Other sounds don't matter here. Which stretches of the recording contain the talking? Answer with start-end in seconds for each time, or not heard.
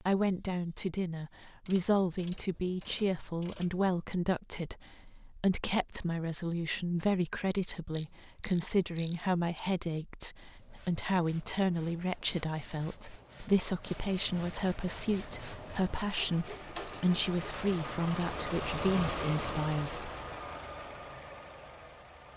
0.0-20.1.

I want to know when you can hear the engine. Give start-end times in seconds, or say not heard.
13.8-22.3.